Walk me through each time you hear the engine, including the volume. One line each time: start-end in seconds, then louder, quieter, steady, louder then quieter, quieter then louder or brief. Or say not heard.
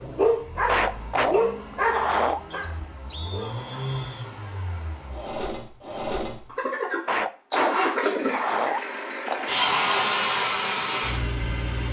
0.0-11.8 louder.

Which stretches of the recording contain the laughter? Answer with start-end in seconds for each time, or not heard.
0.7-2.4, 7.0-9.5.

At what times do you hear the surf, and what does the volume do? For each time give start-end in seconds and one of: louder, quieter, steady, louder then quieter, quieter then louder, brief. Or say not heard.
not heard.